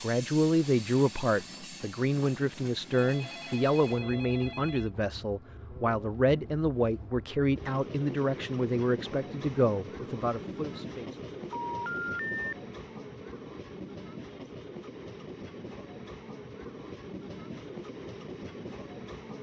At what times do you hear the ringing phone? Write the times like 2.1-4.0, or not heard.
2.9-4.9, 11.5-12.6.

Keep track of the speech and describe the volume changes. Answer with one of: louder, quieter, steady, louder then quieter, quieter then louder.
steady.